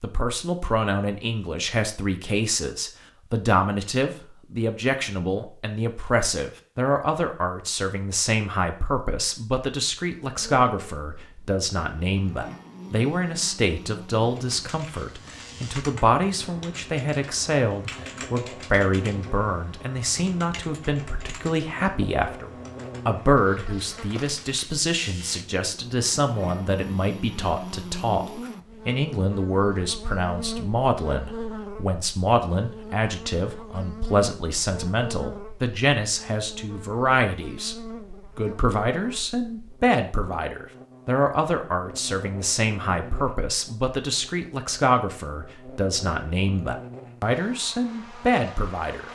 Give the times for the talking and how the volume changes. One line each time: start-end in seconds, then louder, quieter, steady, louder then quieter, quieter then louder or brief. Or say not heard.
0.0-49.0 steady.